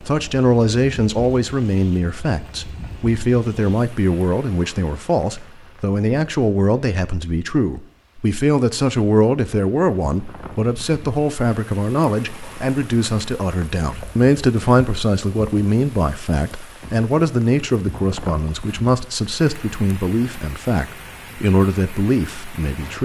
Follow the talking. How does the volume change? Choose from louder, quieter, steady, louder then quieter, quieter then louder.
steady.